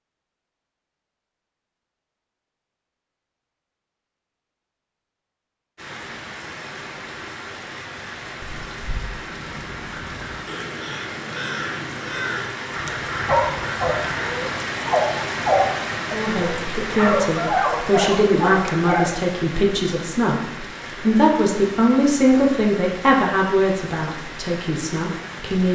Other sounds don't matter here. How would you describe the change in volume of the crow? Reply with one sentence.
The loudness of the crow goes up.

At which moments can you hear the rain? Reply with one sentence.
You can hear the rain from 5.8 to 25.7 s.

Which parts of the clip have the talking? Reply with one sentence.
The talking can be heard from 16.1 to 25.7 s.